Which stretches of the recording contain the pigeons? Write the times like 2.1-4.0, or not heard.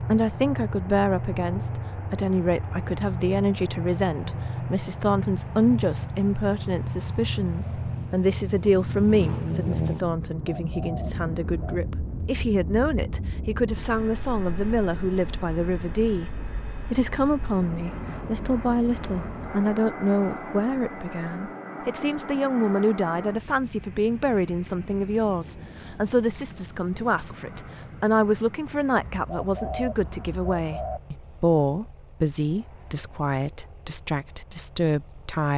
10.3-11.8, 28.9-31.0.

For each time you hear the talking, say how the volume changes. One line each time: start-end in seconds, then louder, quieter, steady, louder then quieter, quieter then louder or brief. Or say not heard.
0.0-35.5 steady.